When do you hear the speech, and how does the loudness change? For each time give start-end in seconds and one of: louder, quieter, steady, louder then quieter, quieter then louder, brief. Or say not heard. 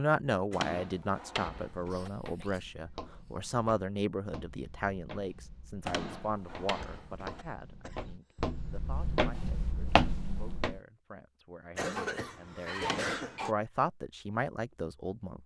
0.0-15.4 quieter then louder.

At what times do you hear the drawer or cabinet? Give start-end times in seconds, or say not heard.
0.5-2.1, 5.8-7.5, 12.8-13.3.